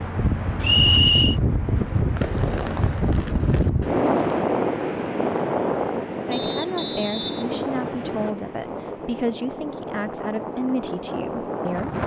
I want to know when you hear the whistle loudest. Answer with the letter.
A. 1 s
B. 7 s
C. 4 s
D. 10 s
A.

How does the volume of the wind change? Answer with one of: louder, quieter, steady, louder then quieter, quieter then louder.
quieter.